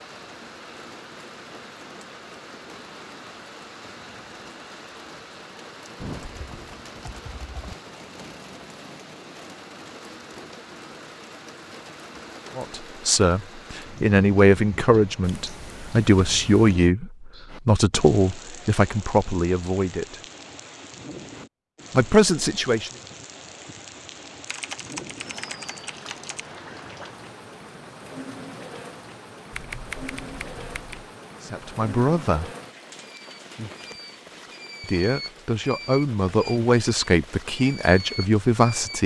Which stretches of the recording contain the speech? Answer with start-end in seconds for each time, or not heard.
12.6-20.2, 21.9-22.9, 31.4-32.5, 34.8-39.0.